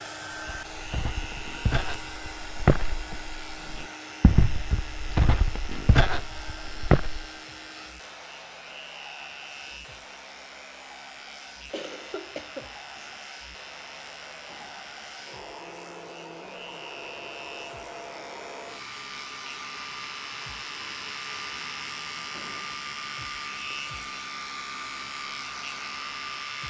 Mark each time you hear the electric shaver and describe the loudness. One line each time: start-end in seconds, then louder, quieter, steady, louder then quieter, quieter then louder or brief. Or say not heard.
0.0-26.6 louder.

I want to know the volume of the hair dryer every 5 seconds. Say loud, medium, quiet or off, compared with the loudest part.
loud, medium, medium, loud, loud, loud.